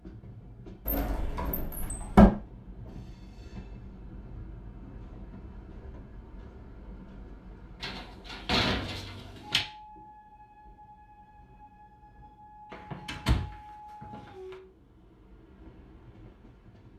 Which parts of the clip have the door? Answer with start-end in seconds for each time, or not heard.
0.8-2.3, 7.8-9.7, 12.7-14.6.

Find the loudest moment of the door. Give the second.
2 s.